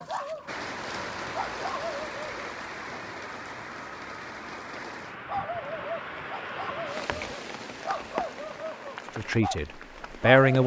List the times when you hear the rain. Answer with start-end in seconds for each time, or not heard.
0.0-10.6.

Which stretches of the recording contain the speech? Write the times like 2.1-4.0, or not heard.
9.2-10.6.